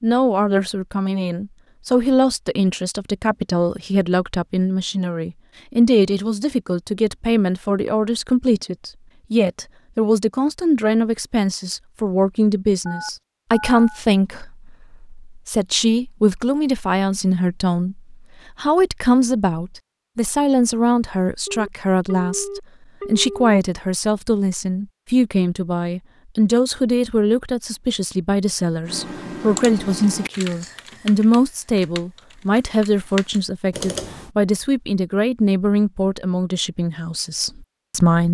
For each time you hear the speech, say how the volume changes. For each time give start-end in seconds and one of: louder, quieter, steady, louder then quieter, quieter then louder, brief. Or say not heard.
0.0-38.2 steady.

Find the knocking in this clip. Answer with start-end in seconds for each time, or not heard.
not heard.